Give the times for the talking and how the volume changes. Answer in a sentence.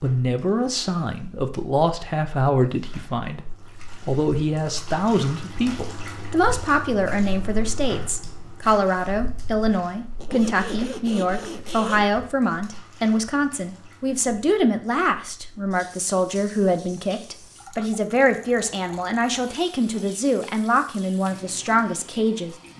The talking can be heard from 0.0 to 22.6 s, at a steady volume.